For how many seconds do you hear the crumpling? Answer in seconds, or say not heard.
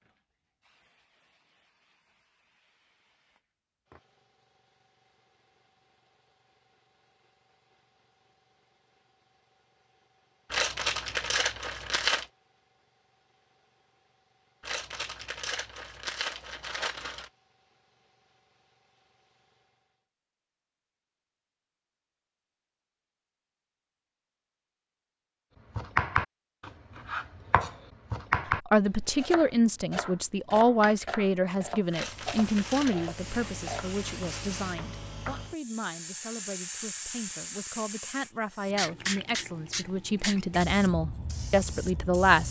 6 s.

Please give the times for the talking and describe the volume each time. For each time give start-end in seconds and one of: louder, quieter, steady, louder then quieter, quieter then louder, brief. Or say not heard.
28.6-42.4 quieter then louder.